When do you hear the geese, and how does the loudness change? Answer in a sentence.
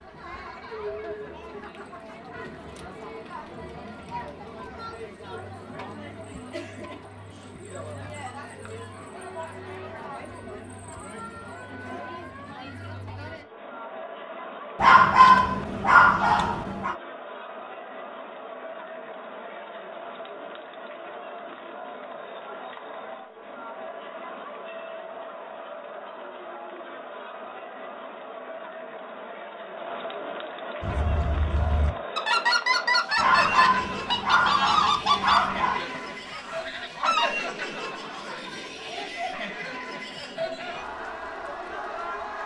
You can hear the geese from 30.8 to 37.3 s, getting louder then quieter.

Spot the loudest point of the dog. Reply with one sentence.
The loudest moment of the dog is at 15 seconds.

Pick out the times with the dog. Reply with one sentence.
The dog can be heard from 14.8 to 16.9 s and from 33.1 to 35.9 s.